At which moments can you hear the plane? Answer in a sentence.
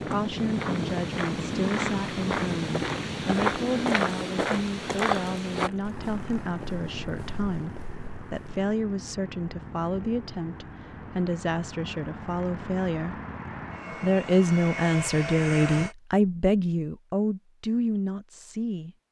The plane can be heard from 0.0 to 15.9 s.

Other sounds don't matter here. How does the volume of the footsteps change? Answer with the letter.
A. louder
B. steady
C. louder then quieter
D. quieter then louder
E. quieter
C.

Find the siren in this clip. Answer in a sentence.
You can't hear the siren here.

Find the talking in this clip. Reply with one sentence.
The talking can be heard from 0.0 to 13.2 s and from 13.9 to 18.9 s.